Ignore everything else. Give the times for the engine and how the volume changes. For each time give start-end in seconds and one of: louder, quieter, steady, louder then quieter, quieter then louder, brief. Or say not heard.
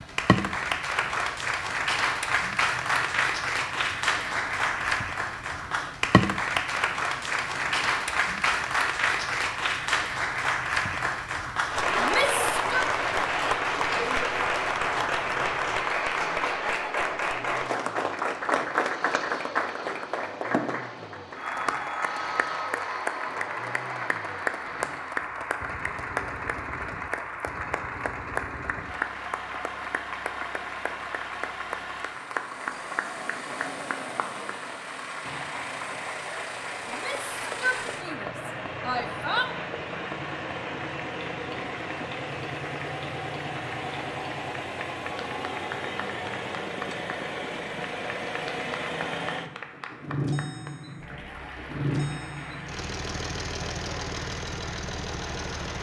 0.0-55.7 louder.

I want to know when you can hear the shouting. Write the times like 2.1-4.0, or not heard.
11.9-12.8, 36.9-39.5.